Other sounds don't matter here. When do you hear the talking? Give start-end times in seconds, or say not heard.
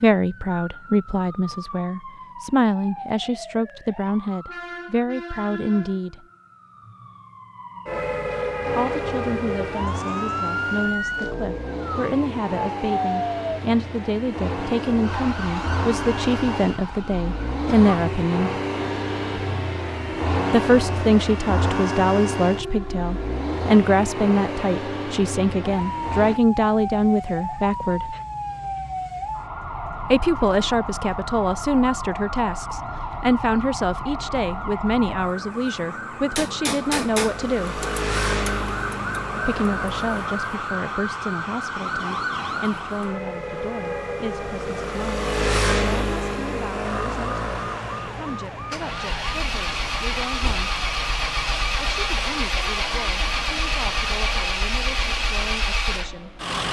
0.0-6.2, 8.8-18.5, 20.5-28.1, 30.1-37.9, 39.5-50.7, 51.8-56.4.